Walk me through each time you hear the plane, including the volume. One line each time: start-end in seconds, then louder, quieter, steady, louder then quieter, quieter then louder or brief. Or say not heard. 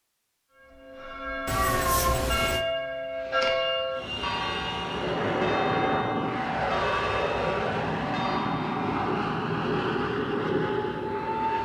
3.9-11.6 steady.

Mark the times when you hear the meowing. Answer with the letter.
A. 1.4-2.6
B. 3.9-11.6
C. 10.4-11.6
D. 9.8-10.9
A.